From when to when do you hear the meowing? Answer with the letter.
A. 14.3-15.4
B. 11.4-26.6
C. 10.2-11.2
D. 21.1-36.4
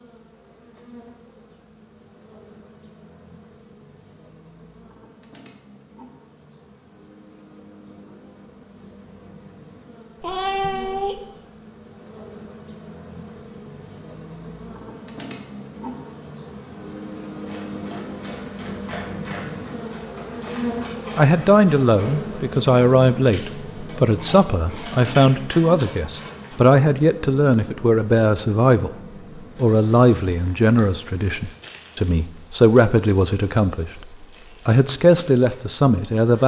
C.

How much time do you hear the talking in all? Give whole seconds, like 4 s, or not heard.
15 s.